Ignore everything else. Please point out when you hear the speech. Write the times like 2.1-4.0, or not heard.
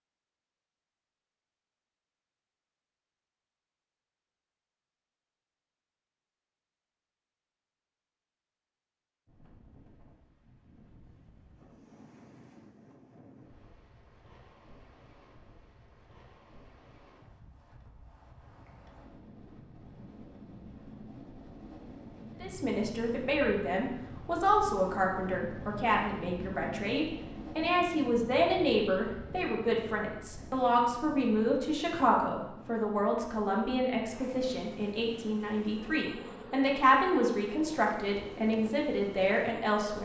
22.4-40.0.